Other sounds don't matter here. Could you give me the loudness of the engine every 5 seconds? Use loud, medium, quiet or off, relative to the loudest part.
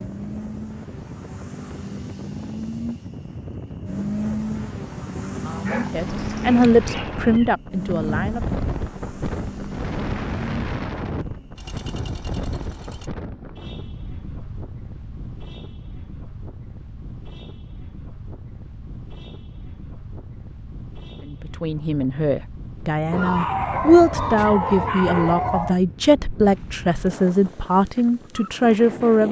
loud, loud, medium, off, off, off.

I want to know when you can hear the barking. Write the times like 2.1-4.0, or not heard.
5.5-7.5, 23.1-25.8.